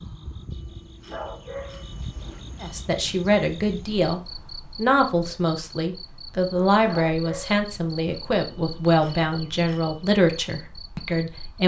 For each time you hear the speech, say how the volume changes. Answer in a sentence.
You can hear the speech from 2.6 to 11.6 s, at a steady volume.